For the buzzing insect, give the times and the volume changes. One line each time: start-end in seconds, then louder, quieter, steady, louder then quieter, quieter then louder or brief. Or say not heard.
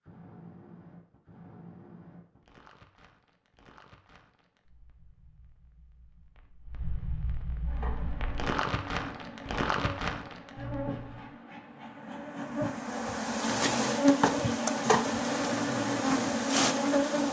7.7-17.2 louder.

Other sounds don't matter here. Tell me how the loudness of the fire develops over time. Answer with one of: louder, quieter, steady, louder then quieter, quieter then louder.
quieter then louder.